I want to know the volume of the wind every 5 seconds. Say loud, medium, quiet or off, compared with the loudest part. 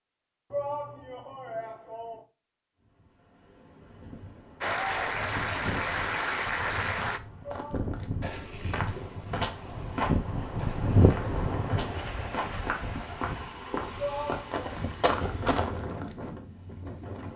quiet, medium, loud, medium.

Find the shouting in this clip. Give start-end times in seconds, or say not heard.
0.5-2.2, 7.4-7.9, 13.9-14.7.